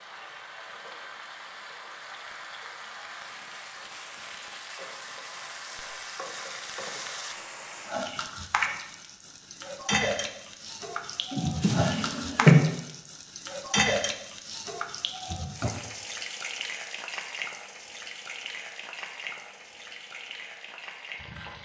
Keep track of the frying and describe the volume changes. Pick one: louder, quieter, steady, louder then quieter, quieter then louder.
louder then quieter.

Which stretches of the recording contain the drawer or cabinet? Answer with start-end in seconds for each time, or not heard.
11.3-12.7.